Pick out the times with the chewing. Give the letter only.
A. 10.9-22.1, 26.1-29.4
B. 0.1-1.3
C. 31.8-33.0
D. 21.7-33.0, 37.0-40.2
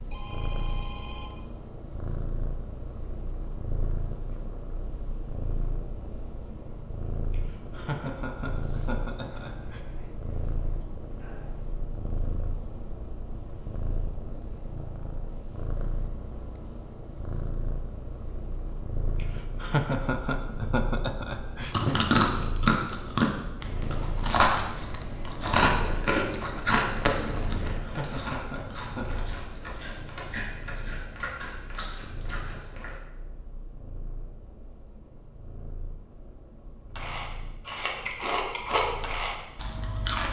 D.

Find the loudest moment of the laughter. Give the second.
20 s.